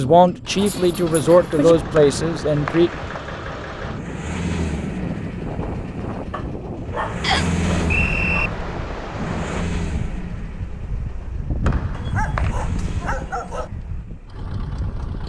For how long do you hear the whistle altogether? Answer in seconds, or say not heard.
3 s.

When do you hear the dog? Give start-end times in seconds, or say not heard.
0.6-1.8, 6.3-8.6, 11.9-13.7.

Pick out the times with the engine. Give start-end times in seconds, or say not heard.
0.0-15.2.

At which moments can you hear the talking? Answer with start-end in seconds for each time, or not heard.
0.0-2.9.